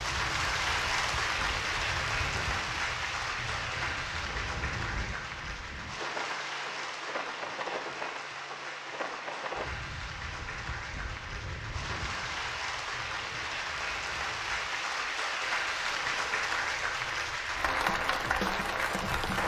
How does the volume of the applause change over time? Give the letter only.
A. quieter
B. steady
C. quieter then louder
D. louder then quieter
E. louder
C.